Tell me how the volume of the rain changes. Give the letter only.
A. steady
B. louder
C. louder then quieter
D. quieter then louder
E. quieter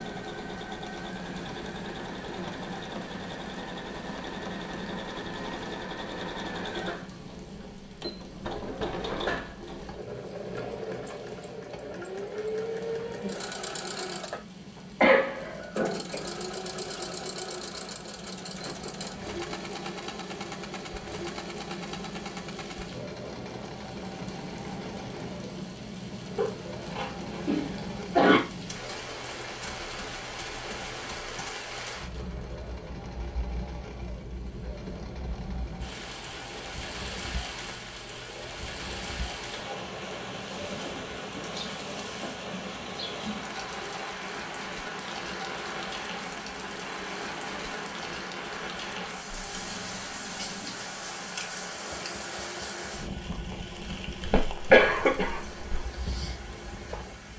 B.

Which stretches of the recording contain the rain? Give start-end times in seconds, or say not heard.
0.0-57.3.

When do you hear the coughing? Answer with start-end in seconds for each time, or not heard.
15.0-16.2, 26.4-28.4, 54.2-55.8.